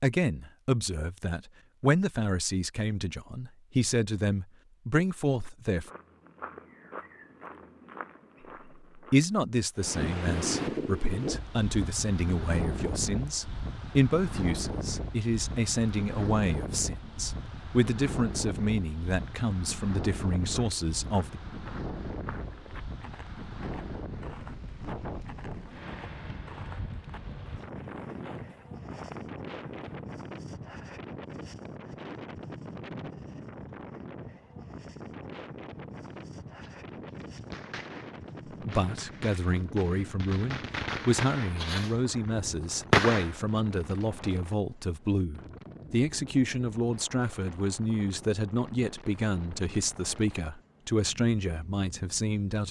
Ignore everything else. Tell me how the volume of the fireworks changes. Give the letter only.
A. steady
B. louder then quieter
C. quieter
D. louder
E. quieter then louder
D.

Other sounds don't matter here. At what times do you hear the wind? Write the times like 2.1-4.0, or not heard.
9.8-52.4.